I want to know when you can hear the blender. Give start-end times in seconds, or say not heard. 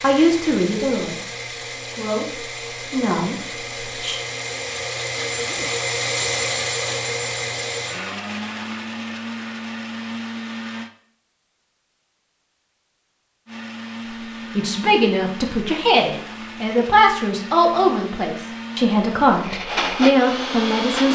0.0-10.9, 13.4-21.1.